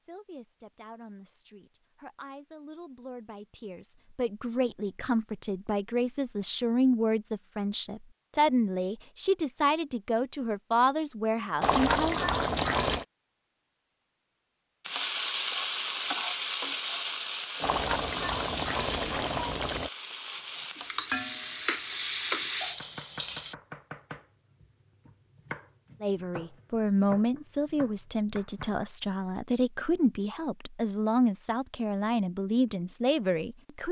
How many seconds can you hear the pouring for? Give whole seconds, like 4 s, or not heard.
4 s.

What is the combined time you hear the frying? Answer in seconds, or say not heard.
9 s.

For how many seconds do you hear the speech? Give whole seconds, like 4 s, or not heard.
20 s.